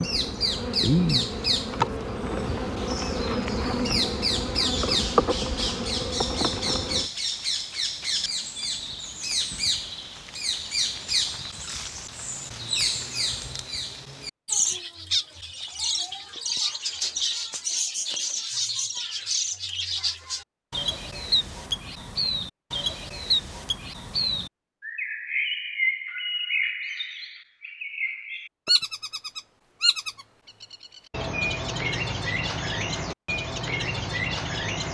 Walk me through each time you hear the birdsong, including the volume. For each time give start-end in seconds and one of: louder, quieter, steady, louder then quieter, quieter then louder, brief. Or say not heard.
0.0-34.9 steady.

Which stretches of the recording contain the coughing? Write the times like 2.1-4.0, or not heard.
not heard.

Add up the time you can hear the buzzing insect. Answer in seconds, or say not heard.
7 s.